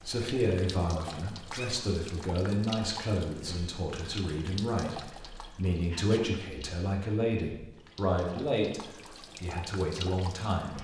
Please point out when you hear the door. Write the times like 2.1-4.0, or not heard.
not heard.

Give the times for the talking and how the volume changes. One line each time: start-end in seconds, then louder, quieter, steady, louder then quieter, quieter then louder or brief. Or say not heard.
0.0-10.7 steady.